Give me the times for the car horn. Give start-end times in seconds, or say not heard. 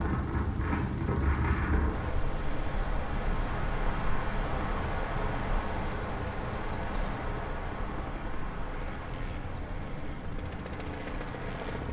not heard.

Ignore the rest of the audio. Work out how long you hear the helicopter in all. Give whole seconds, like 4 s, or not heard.
12 s.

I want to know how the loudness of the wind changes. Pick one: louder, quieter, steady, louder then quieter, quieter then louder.
quieter.